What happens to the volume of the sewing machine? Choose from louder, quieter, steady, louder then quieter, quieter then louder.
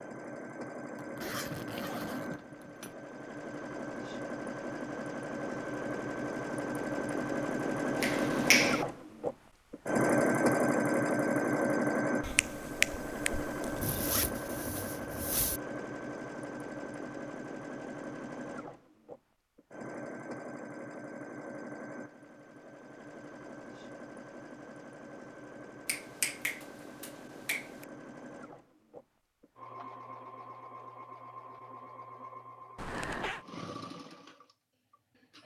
louder then quieter.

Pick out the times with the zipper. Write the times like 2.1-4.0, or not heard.
0.9-3.0, 13.8-15.6, 32.8-33.5.